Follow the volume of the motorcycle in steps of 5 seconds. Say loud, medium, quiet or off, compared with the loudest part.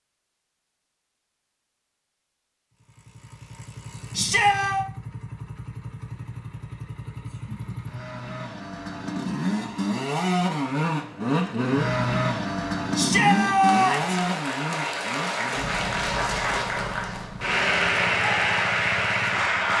quiet, medium, loud, quiet.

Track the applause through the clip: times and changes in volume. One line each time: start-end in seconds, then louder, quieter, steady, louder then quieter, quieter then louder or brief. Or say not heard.
13.6-19.7 louder.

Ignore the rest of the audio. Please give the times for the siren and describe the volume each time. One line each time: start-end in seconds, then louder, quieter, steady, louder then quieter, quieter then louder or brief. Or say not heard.
not heard.